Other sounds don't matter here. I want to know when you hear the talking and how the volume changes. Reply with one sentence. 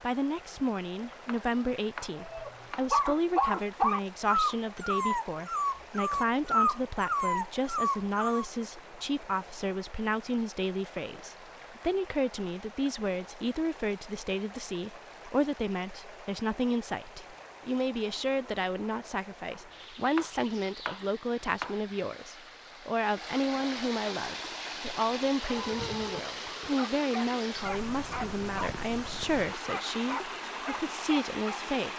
The talking can be heard from 0.0 to 31.9 s, at a steady volume.